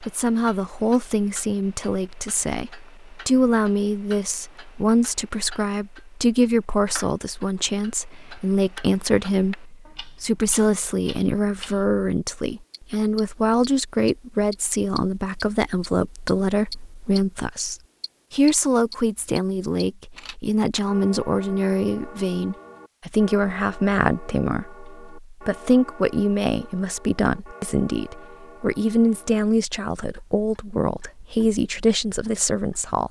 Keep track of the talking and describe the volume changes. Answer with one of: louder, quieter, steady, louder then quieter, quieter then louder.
steady.